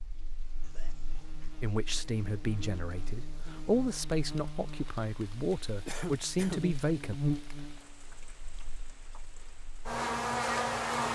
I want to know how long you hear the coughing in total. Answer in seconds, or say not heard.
2 s.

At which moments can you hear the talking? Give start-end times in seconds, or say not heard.
1.6-7.2.